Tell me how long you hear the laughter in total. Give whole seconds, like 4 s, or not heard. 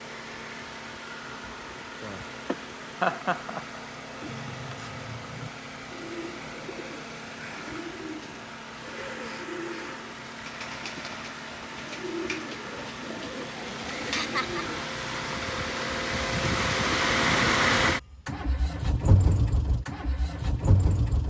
2 s.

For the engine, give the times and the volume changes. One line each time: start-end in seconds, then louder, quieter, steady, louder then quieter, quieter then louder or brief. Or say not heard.
0.0-21.2 louder.